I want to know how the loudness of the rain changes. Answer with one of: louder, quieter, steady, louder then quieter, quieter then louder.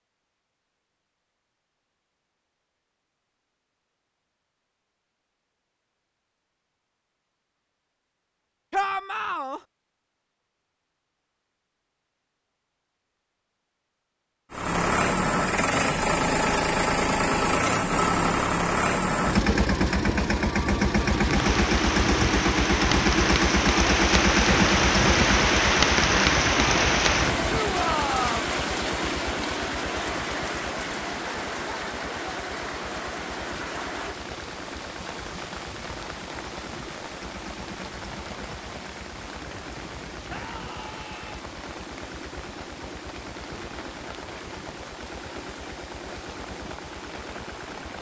quieter.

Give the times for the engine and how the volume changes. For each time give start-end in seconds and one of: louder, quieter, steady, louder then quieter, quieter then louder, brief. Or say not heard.
14.5-47.9 quieter.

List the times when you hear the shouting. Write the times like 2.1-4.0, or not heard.
8.7-9.6, 27.4-28.4, 40.2-41.5.